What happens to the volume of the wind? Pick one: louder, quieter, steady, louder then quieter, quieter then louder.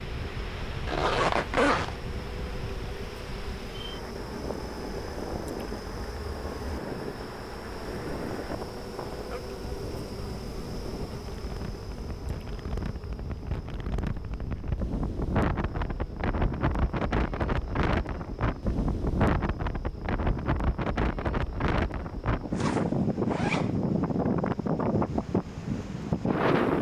louder.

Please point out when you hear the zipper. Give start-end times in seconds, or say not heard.
0.8-2.0, 22.5-23.8.